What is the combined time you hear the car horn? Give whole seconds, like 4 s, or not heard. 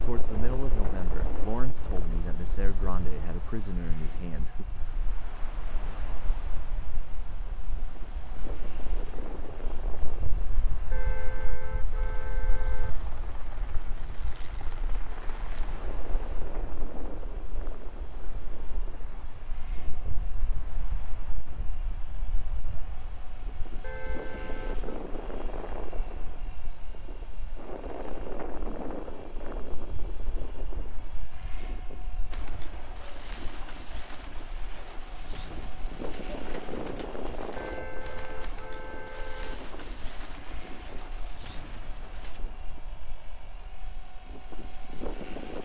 5 s.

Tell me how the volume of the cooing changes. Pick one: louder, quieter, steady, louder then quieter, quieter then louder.
steady.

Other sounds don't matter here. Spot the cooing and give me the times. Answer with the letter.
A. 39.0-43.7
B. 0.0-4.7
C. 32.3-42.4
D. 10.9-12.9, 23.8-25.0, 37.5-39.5
C.